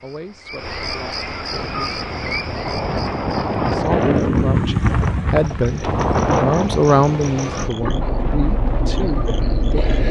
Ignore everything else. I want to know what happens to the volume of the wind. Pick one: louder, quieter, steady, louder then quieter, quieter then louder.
louder then quieter.